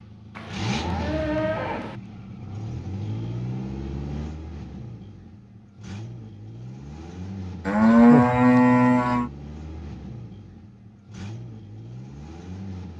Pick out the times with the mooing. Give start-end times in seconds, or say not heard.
0.3-2.0, 7.7-9.3.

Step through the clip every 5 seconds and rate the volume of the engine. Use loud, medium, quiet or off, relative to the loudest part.
loud, medium, medium.